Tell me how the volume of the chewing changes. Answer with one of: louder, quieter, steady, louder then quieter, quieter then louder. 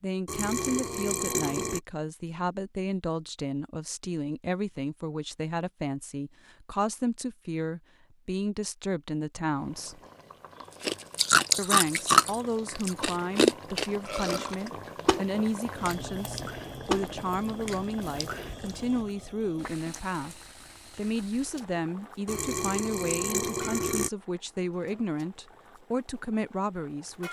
quieter.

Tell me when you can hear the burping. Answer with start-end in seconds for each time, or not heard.
0.2-1.8, 14.1-14.6, 22.2-24.1.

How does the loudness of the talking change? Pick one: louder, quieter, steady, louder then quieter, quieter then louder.
steady.